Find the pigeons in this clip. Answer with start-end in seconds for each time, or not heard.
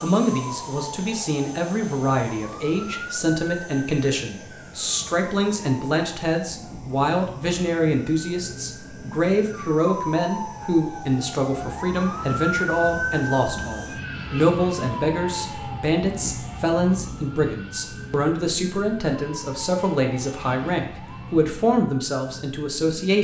not heard.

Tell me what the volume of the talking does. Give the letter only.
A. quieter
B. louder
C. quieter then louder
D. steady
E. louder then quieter
D.